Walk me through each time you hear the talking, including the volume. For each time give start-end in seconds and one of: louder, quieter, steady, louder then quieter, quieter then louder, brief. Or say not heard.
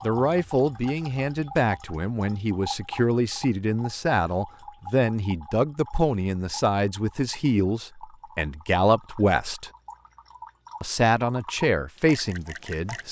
0.0-9.7 steady
10.8-13.0 brief.